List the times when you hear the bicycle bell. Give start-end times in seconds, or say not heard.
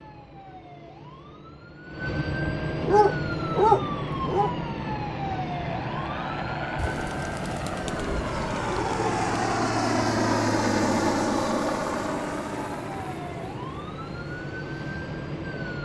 not heard.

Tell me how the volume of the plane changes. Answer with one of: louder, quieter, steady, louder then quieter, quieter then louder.
louder then quieter.